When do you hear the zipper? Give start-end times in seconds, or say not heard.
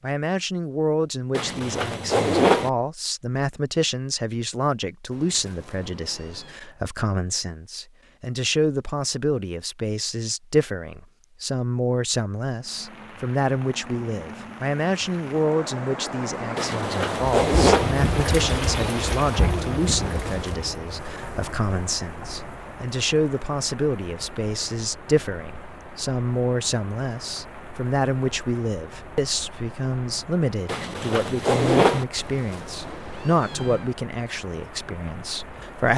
1.4-2.7, 16.6-17.9, 30.6-32.0.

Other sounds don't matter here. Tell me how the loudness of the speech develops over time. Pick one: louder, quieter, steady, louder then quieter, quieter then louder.
steady.